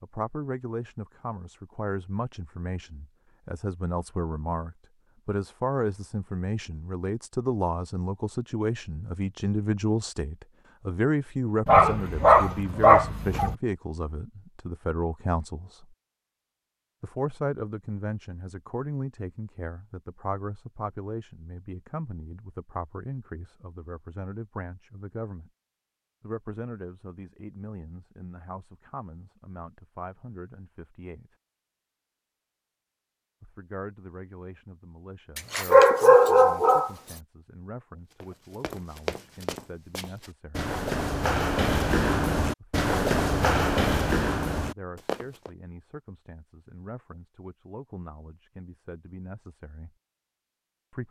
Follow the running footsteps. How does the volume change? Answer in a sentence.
The volume of the running footsteps goes up.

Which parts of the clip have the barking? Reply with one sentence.
The barking can be heard from 11.7 to 13.6 s and from 35.4 to 36.9 s.